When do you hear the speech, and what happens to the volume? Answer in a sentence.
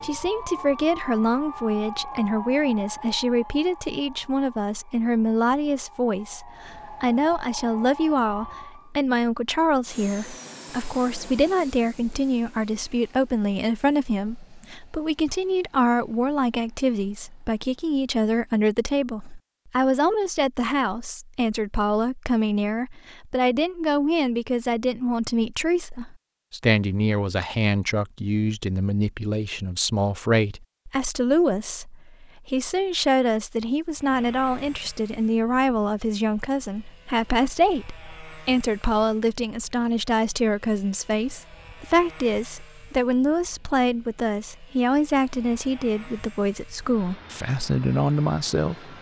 You can hear the speech from 0.0 to 48.9 s, at a steady volume.